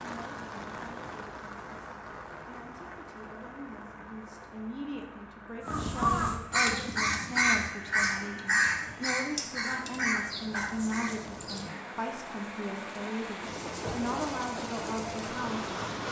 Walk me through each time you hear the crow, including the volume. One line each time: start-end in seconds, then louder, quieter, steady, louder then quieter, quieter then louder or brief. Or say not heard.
5.6-11.9 quieter.